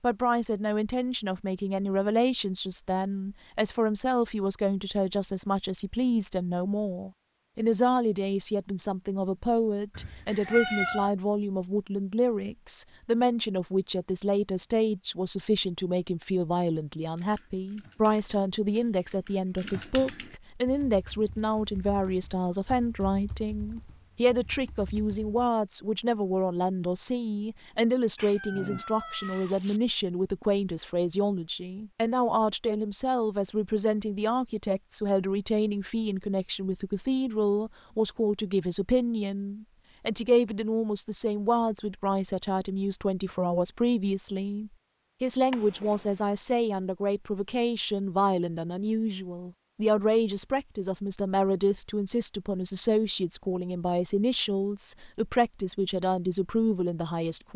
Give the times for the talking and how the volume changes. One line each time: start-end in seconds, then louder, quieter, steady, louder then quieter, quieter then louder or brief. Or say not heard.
0.0-57.5 steady.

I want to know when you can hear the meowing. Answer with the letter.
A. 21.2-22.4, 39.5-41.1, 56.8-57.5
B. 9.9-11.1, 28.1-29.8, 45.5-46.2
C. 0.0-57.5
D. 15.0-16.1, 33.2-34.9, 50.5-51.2
B.